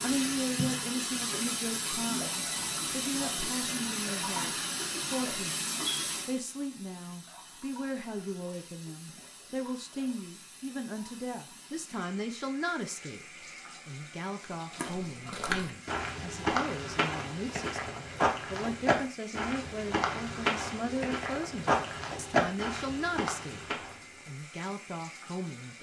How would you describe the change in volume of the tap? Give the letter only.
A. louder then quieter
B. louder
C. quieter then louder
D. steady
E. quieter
E.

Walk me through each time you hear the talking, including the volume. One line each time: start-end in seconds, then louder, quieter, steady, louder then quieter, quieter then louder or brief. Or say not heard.
0.0-25.7 steady.